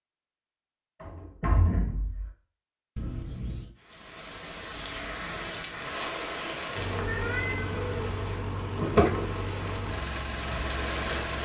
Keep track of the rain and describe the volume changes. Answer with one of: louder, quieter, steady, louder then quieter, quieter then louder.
quieter then louder.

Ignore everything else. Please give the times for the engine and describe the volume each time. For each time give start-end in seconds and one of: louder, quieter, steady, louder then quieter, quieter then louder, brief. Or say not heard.
6.8-11.4 steady.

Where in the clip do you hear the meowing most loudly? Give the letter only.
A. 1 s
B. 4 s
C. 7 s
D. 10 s
C.